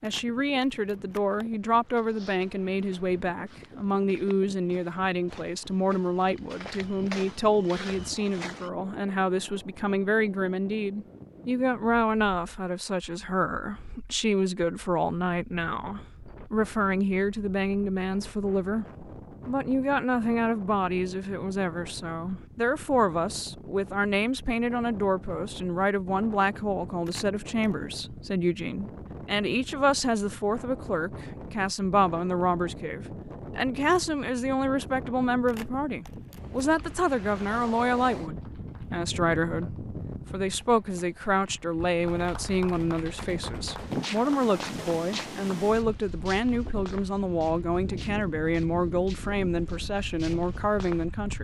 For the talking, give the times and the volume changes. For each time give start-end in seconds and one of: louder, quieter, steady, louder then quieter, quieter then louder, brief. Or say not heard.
0.0-18.9 steady
19.4-51.3 steady.